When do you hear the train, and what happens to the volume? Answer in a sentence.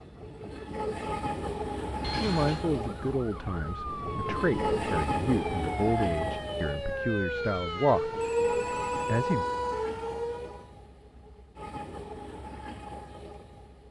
The train can be heard from 0.0 to 13.8 s, getting quieter.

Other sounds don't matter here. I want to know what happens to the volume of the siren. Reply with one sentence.
The loudness of the siren goes up.